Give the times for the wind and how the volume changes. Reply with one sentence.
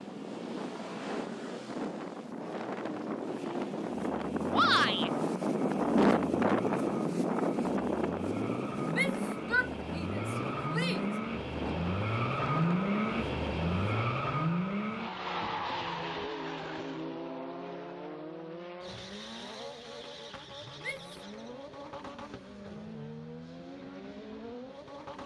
The wind can be heard from 0.0 to 14.1 s, getting louder then quieter.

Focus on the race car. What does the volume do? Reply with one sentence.
The loudness of the race car goes up, then down.